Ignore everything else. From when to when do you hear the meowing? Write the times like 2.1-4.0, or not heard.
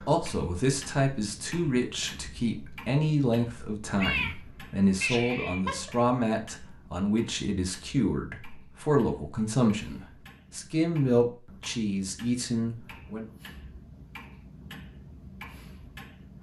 3.9-5.9.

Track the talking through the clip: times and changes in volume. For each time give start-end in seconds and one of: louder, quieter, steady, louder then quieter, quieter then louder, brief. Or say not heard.
0.1-13.2 steady.